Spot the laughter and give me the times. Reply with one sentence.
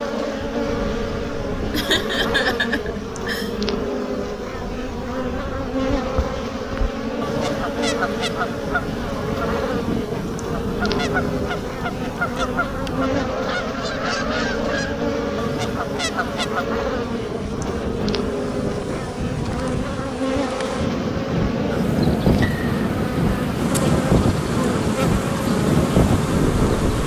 You can hear the laughter from 1.7 to 3.5 s.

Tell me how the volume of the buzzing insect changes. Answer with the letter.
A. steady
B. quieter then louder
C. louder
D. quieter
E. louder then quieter
A.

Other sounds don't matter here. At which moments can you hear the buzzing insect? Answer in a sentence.
You can hear the buzzing insect from 0.0 to 27.0 s.